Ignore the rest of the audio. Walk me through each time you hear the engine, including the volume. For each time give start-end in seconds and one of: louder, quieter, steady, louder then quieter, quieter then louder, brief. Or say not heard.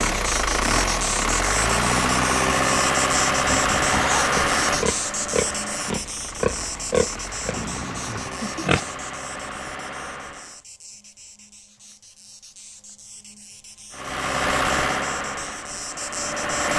0.0-10.6 quieter
13.9-16.7 brief.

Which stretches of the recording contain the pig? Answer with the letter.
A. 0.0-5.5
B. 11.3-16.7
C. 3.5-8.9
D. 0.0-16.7
C.